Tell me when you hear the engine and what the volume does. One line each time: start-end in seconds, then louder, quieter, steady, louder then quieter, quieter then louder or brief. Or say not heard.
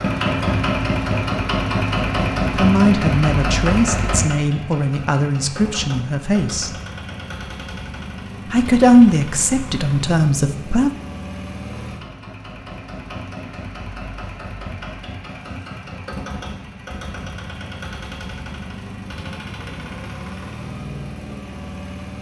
0.0-22.1 quieter.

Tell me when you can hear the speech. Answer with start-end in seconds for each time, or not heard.
2.5-6.7, 8.5-10.9.